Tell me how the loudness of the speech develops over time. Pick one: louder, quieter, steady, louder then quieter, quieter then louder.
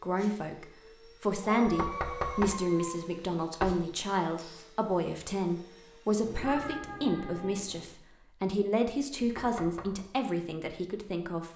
steady.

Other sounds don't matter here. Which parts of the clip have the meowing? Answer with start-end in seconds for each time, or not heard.
1.6-3.0, 6.2-7.9.